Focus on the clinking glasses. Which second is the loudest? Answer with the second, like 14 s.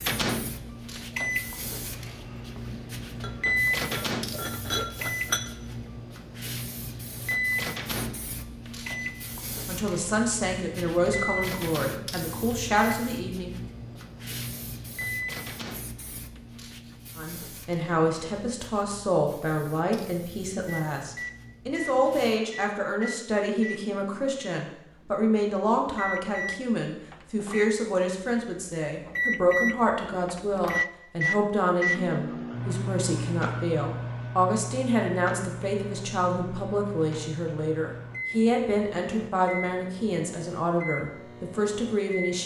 5 s.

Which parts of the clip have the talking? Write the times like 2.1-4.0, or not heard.
9.7-13.5, 17.1-42.4.